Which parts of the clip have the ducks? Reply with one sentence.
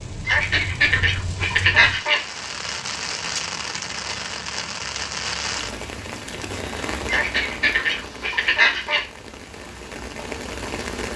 You can hear the ducks from 0.2 to 2.2 s and from 7.0 to 9.1 s.